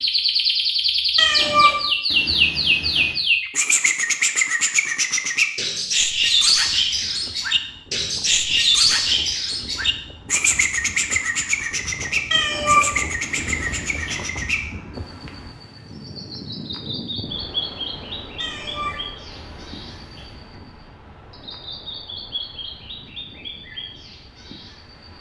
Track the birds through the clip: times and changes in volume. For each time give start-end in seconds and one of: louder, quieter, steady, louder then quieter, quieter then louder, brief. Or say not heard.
0.0-25.1 quieter.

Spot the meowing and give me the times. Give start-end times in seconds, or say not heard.
1.1-3.1, 12.3-14.2, 18.4-20.4.